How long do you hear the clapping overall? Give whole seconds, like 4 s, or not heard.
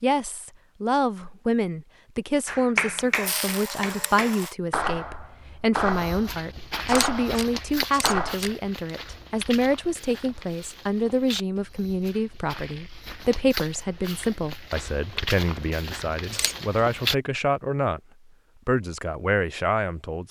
6 s.